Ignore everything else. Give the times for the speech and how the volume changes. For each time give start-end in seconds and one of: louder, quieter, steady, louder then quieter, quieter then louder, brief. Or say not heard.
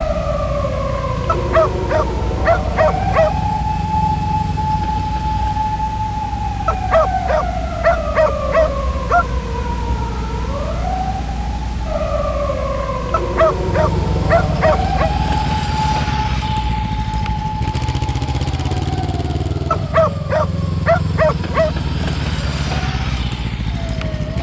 not heard.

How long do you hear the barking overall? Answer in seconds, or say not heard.
9 s.